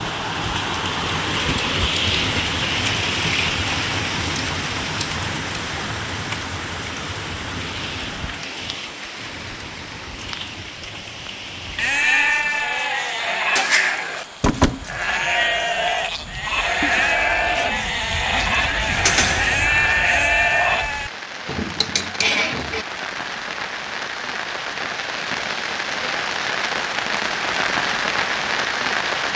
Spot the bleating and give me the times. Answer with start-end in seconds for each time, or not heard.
11.8-22.9.